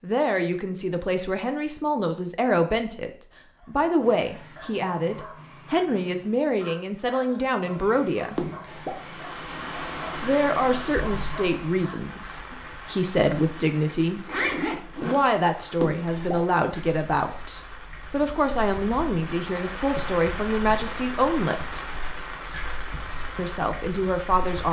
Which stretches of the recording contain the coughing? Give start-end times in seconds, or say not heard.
8.3-8.9, 15.8-16.4.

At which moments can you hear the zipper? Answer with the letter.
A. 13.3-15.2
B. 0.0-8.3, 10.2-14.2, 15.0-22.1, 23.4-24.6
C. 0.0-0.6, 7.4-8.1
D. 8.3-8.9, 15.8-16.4
A.